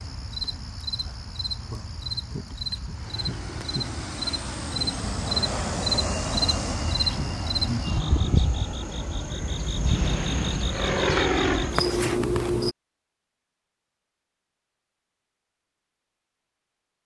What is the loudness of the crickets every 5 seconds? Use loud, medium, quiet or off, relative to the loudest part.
medium, loud, loud, off.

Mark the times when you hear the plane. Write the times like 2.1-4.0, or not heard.
2.9-11.8.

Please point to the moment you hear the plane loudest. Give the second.
11 s.